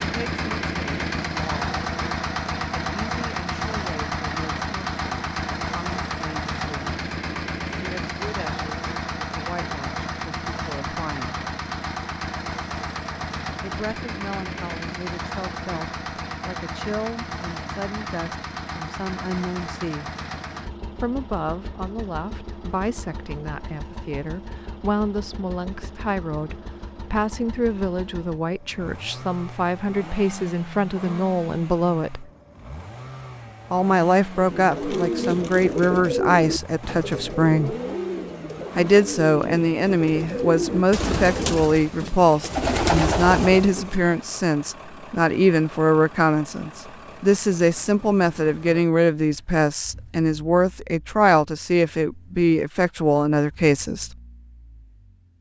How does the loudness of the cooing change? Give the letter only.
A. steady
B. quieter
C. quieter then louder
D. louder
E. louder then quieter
C.